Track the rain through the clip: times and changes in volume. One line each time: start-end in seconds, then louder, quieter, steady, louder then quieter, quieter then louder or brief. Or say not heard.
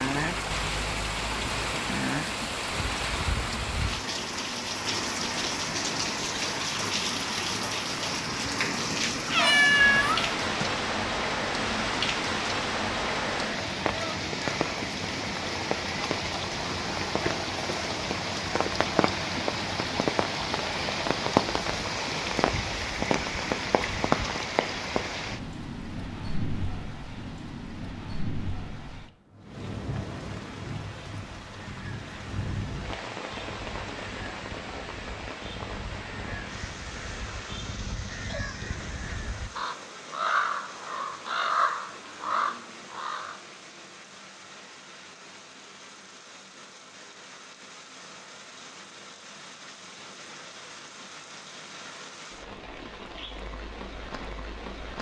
0.0-54.9 quieter.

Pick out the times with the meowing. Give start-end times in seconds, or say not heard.
9.2-10.7.